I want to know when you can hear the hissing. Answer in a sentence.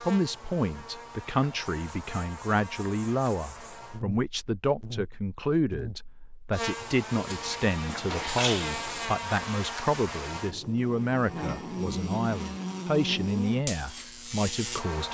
The hissing can be heard from 7.2 to 9.1 s.